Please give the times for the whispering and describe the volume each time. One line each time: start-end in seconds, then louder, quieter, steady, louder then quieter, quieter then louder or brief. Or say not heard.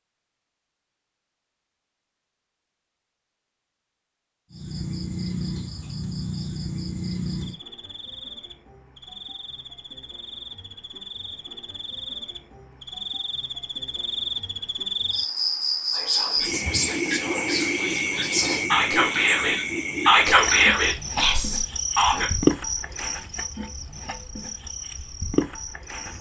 15.9-22.3 louder then quieter.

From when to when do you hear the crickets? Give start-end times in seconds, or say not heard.
4.5-26.1.